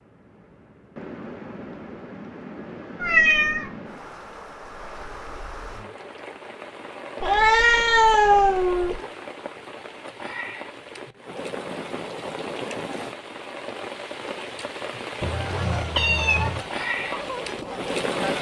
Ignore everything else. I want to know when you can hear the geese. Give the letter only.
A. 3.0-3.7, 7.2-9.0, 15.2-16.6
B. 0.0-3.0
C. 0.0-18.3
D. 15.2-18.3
D.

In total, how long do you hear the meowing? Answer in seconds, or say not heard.
4 s.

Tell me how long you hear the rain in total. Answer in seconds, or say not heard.
18 s.